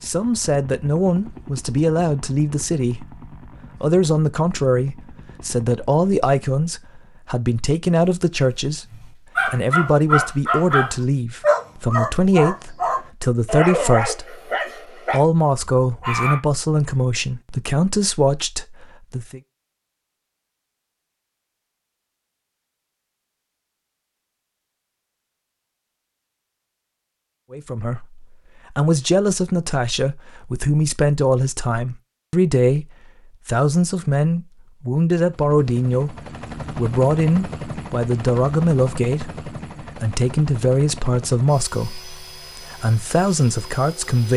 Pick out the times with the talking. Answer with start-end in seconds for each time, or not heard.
0.0-3.0, 3.8-8.8, 9.4-14.5, 15.1-19.4, 27.5-32.9, 33.5-44.3.